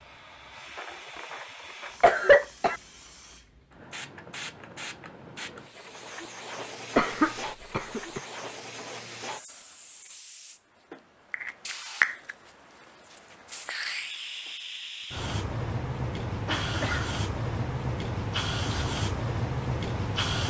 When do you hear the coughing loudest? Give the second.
2 s.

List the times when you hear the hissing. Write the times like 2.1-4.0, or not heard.
0.0-20.4.